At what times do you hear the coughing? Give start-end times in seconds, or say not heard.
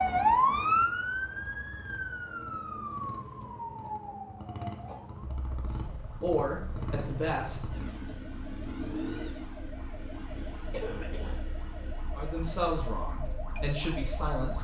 3.8-5.0, 10.7-11.4.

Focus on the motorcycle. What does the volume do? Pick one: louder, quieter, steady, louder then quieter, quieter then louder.
louder then quieter.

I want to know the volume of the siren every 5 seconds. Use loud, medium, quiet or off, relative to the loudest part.
loud, quiet, quiet.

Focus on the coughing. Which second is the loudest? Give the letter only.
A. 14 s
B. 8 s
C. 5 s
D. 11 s
D.